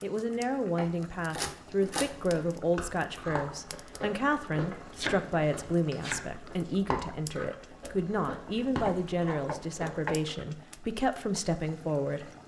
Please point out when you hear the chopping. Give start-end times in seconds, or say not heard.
0.8-2.4, 5.0-6.4, 8.8-10.2.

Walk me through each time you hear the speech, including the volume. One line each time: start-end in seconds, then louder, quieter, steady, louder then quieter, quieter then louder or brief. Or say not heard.
0.0-12.3 steady.